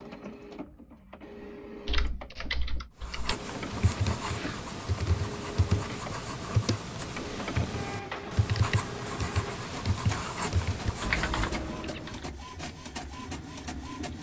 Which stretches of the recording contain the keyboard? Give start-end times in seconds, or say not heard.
1.9-12.3.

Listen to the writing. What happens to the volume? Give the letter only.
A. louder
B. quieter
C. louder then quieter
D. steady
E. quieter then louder
D.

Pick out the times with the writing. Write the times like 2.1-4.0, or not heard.
3.0-11.8.